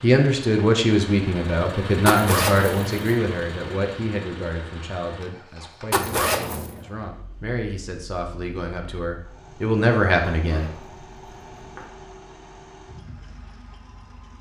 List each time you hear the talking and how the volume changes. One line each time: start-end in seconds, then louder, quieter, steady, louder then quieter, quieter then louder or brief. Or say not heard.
0.0-10.7 quieter then louder.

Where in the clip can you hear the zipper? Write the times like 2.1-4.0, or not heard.
2.0-3.0, 5.9-6.8, 10.4-11.8.